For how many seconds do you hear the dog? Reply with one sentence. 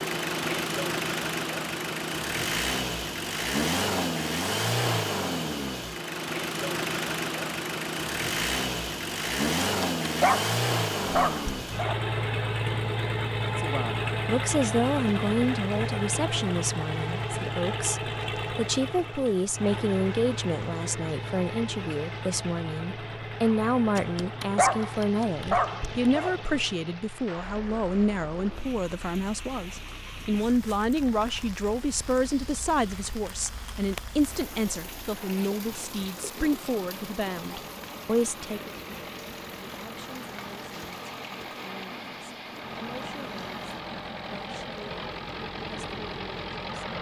You can hear the dog for 5 seconds altogether.